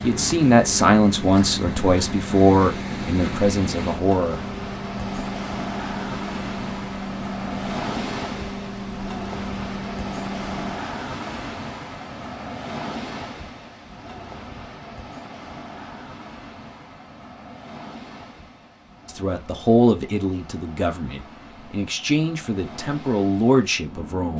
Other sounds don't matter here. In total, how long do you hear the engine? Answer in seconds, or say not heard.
11 s.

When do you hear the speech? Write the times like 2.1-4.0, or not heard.
0.0-4.4, 19.1-24.3.